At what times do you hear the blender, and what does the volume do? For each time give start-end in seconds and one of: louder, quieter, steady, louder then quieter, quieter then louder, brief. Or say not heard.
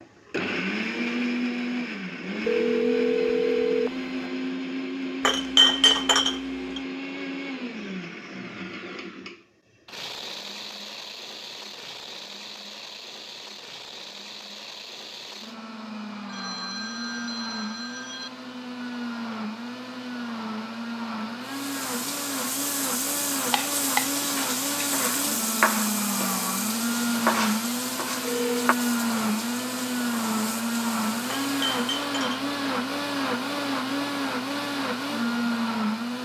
0.0-36.2 quieter then louder.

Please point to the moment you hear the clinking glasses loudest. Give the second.
6 s.